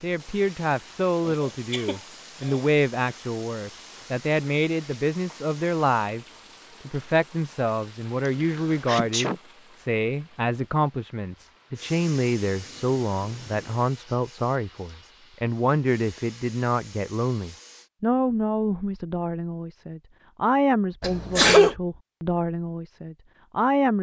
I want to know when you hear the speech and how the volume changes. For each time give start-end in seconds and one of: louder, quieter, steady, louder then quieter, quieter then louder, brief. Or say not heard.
0.0-23.9 steady.